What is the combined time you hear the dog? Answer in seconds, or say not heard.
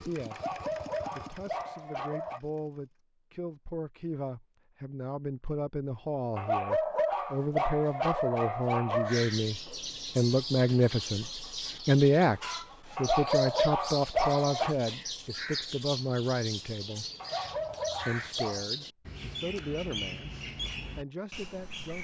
8 s.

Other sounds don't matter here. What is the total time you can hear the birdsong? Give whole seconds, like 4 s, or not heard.
13 s.